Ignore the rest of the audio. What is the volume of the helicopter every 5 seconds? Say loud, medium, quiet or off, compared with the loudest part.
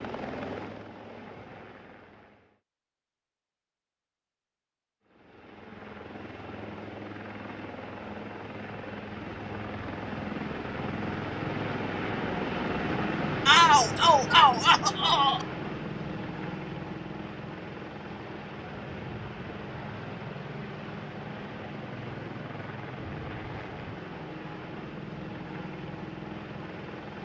medium, medium, loud, medium, medium, medium.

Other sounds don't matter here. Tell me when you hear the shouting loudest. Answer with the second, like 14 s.
14 s.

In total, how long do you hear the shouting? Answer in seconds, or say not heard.
2 s.